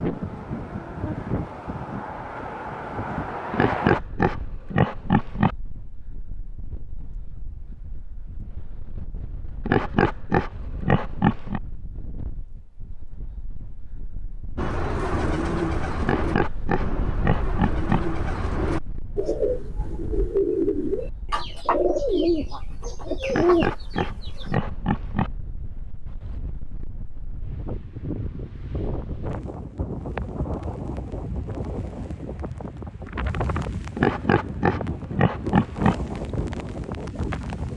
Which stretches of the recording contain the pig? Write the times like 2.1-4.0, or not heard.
3.5-5.5, 9.7-11.6, 16.0-18.0, 23.2-25.3, 34.0-36.0.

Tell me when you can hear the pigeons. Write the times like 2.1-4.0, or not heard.
14.6-24.5.